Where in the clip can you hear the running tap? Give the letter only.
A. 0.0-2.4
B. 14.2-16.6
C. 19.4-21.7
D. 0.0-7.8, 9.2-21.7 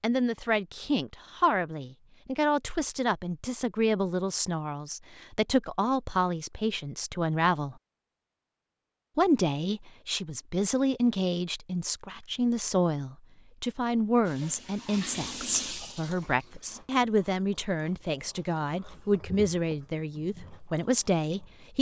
B.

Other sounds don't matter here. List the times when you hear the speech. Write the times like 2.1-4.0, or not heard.
0.0-7.8, 9.2-21.7.